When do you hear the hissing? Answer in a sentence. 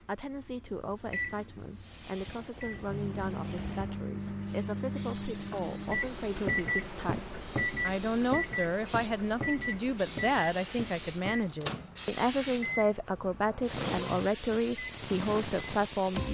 The hissing can be heard from 1.8 to 16.2 s.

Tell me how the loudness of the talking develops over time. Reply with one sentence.
The loudness of the talking goes up.